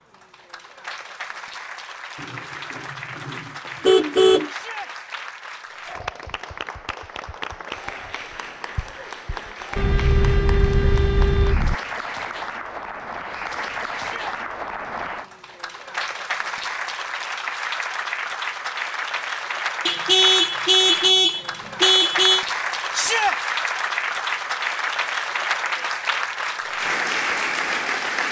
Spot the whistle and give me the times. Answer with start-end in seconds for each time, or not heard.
not heard.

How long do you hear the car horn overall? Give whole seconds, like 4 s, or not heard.
7 s.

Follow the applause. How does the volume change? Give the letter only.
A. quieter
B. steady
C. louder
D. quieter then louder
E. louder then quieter
C.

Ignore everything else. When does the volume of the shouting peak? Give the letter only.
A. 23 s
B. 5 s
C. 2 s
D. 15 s
A.